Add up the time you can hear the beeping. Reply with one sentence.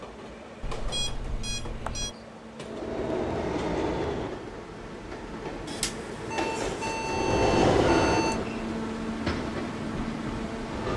The beeping can be heard for 4 seconds in total.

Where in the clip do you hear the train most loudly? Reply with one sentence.
The volume of the train peaks at 8 seconds.